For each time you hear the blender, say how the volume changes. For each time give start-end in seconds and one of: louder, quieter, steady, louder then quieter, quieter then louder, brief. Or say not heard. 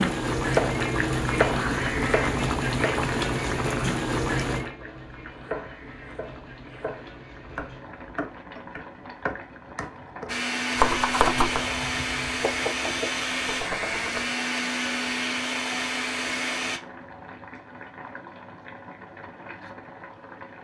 10.2-16.8 steady.